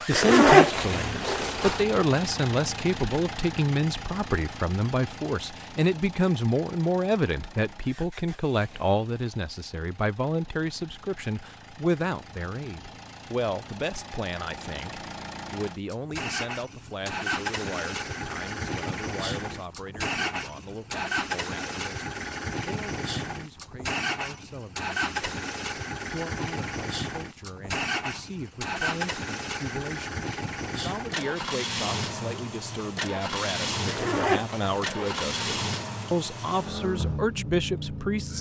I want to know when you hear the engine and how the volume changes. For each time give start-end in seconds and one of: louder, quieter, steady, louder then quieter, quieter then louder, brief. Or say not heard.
0.0-38.3 quieter then louder.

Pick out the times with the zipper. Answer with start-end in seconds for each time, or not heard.
0.1-1.9, 33.9-35.5.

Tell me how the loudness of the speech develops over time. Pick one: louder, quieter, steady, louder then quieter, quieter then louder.
quieter then louder.